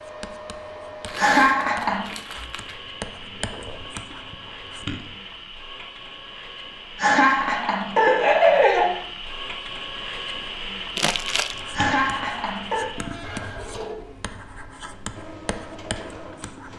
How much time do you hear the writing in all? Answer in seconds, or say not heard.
10 s.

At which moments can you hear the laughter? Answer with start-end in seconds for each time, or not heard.
1.1-2.0, 7.0-8.9, 11.7-12.9.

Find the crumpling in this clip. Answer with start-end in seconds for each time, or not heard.
1.1-2.8, 10.9-11.6.